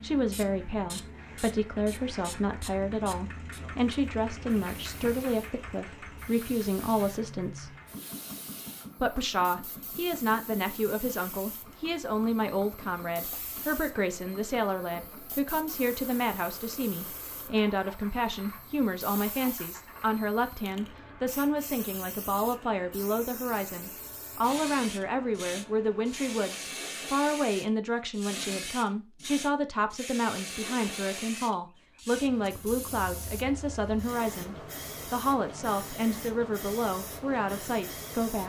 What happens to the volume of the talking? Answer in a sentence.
The volume of the talking stays about the same.